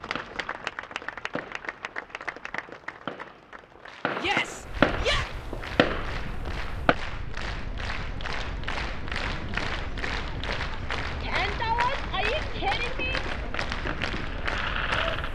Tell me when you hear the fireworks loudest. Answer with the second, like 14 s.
5 s.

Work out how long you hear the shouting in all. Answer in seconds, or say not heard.
3 s.